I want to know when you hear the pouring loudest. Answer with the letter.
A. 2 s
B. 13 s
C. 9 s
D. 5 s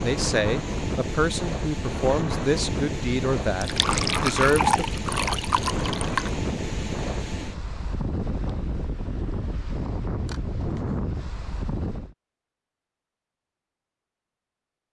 D.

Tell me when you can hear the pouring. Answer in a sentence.
You can hear the pouring from 3.6 to 6.3 s.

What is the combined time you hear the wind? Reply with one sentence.
You can hear the wind for 12 seconds altogether.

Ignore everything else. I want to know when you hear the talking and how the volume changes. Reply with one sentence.
The talking can be heard from 0.0 to 4.8 s, at a steady volume.